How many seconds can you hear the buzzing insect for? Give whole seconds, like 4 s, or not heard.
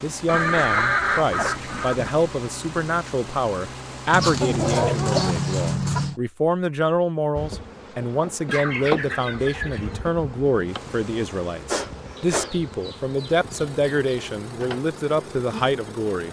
9 s.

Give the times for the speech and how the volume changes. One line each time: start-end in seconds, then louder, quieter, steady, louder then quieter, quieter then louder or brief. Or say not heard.
0.0-16.2 steady.